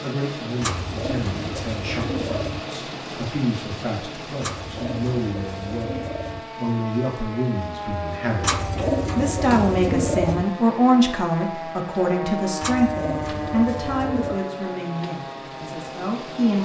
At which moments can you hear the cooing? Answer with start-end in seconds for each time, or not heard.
0.6-2.6, 4.4-6.4, 8.4-10.4, 12.6-14.4.